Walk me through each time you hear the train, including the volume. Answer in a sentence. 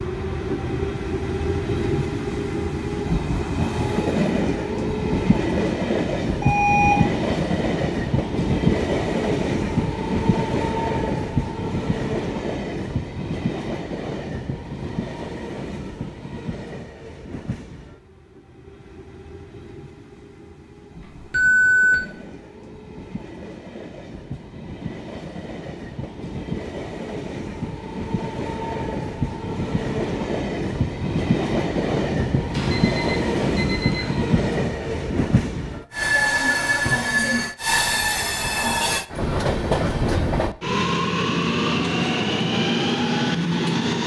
You can hear the train from 0.0 to 44.0 s, getting quieter then louder.